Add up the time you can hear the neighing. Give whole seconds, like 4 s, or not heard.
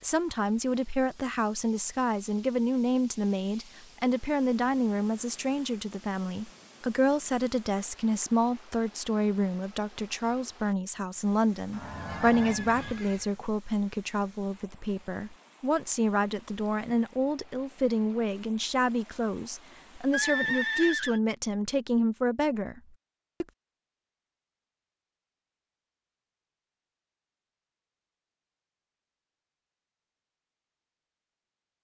3 s.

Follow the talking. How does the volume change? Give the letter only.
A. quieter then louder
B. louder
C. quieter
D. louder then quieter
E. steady
E.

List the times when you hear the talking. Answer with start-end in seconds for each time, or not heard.
0.0-22.8.